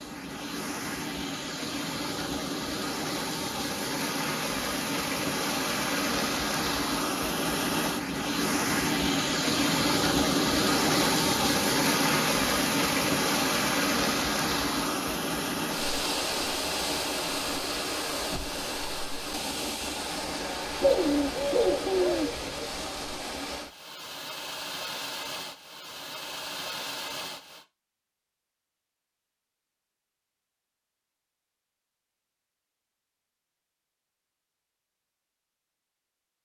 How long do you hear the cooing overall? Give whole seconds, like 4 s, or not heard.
2 s.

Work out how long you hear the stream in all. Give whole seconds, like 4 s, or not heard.
28 s.